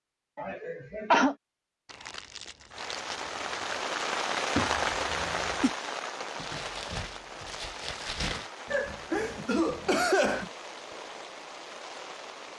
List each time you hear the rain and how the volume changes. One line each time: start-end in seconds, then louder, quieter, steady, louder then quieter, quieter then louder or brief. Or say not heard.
2.7-12.5 quieter.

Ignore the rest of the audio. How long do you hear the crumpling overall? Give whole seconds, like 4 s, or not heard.
4 s.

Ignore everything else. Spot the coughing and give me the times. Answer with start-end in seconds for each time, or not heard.
0.3-1.4, 4.5-5.8, 8.7-10.5.